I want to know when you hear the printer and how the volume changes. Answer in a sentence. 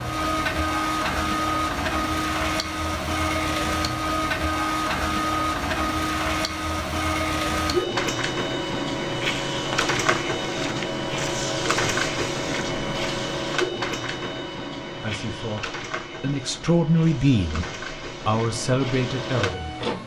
The printer can be heard from 0.0 to 20.0 s, getting quieter.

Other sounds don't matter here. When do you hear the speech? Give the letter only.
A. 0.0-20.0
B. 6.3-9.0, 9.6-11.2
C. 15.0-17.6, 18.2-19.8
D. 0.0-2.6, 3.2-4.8
C.